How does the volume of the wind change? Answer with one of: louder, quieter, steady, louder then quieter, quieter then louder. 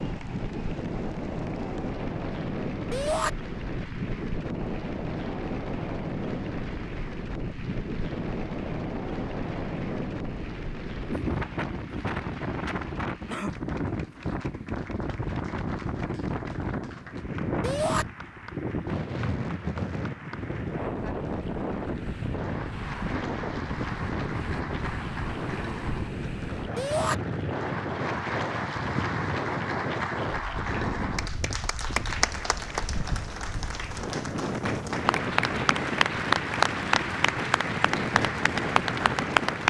steady.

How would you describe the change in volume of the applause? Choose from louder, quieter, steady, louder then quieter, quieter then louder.
louder.